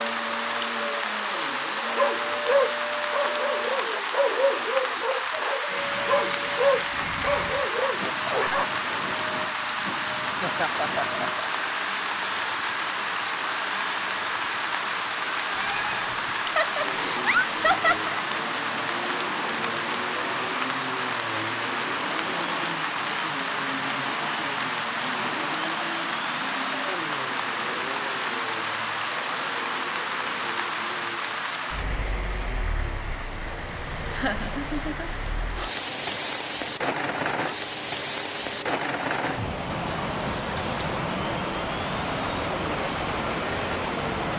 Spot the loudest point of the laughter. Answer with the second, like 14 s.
18 s.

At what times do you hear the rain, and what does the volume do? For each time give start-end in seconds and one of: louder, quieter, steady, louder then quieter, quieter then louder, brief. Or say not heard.
0.0-44.3 steady.